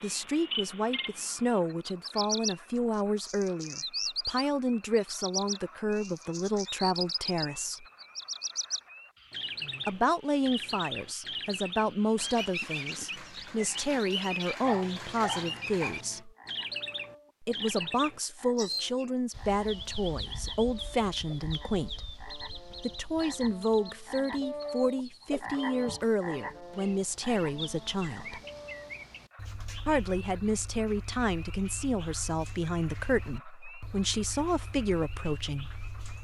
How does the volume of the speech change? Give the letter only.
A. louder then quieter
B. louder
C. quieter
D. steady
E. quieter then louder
D.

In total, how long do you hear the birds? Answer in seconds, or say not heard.
36 s.